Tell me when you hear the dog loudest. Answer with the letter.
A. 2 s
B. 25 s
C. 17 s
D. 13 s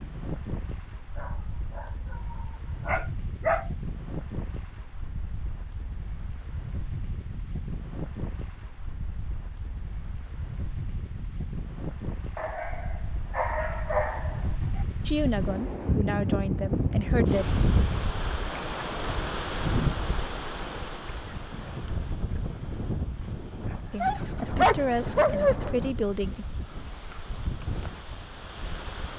B.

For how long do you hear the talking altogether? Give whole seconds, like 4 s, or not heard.
5 s.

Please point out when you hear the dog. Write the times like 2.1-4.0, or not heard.
1.1-3.6, 12.3-14.8, 24.0-25.6.